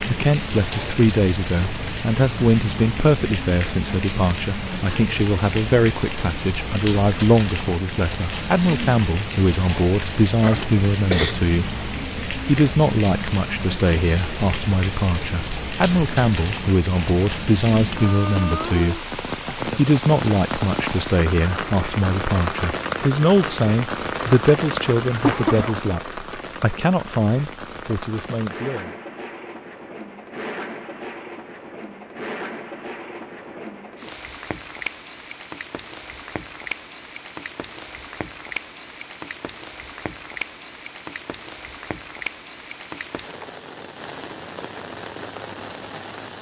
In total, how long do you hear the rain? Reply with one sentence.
The rain can be heard for 46 seconds in total.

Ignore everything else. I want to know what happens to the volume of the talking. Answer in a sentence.
The volume of the talking stays about the same.